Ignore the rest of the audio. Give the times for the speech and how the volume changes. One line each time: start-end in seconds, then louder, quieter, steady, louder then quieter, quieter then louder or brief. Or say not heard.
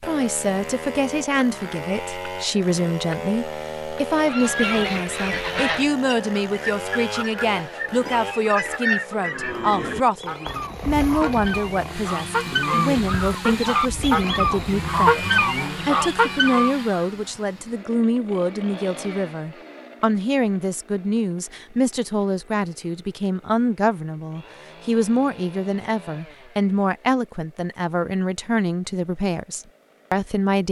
0.0-30.6 steady.